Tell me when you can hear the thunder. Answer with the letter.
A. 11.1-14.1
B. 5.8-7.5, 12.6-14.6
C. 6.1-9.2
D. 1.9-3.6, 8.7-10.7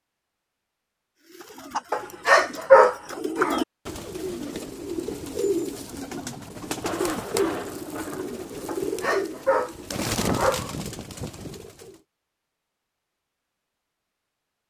C.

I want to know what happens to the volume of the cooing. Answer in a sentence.
The loudness of the cooing stays about the same.